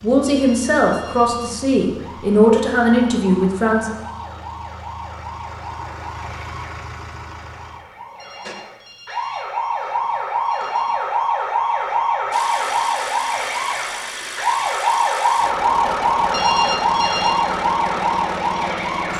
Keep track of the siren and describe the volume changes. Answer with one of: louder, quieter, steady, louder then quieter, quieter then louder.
louder.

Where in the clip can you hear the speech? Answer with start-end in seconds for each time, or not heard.
0.0-3.9.